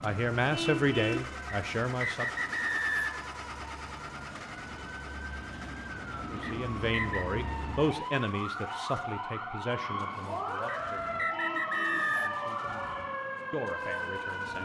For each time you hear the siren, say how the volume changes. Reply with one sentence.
You can hear the siren from 0.0 to 14.5 s, getting louder.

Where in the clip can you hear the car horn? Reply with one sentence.
The car horn can be heard from 0.5 to 1.3 s and from 11.3 to 12.2 s.